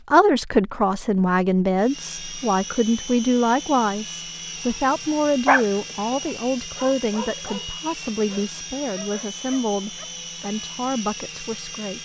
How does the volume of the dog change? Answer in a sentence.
The volume of the dog goes down.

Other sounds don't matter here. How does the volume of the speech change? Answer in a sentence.
The loudness of the speech goes down.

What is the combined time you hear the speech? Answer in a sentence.
You can hear the speech for 12 seconds altogether.